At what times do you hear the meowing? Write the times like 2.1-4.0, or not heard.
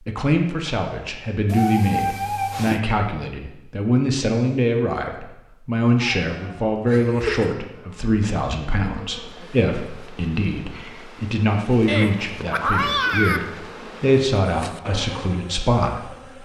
1.4-2.8, 6.0-7.5, 11.8-13.4.